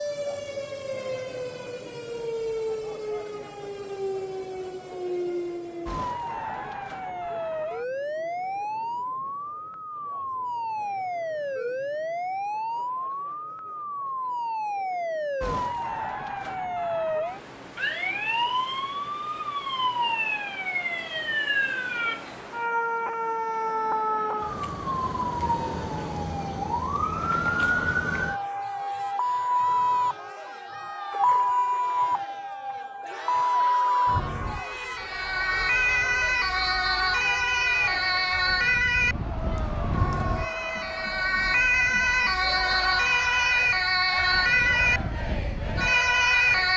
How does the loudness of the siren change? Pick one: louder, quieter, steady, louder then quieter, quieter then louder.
louder.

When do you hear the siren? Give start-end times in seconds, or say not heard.
0.0-46.7.